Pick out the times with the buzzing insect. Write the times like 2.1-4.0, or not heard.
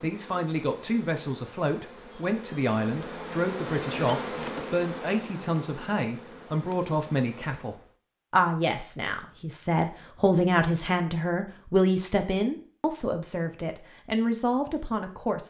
0.0-8.0.